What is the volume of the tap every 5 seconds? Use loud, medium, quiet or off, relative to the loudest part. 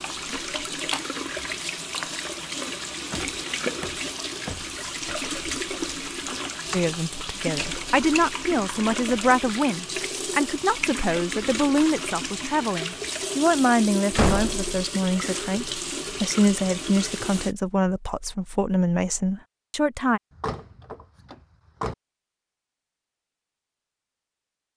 loud, loud, loud, loud, off.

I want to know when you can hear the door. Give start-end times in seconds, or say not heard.
3.1-5.3, 14.1-14.8, 20.4-21.9.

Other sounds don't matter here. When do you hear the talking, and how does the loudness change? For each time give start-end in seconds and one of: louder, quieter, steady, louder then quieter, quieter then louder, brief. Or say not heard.
6.7-20.2 steady.